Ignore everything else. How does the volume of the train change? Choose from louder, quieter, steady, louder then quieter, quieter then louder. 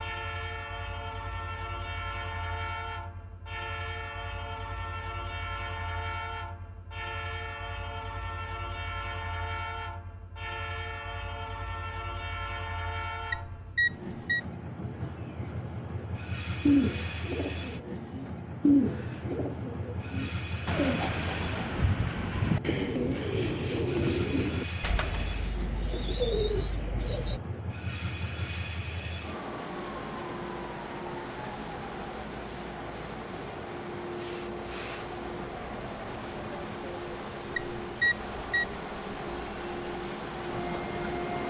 steady.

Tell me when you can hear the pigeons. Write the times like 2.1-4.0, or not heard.
16.6-27.4.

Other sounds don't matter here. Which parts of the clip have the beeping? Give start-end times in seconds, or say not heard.
13.3-14.4, 37.5-38.6.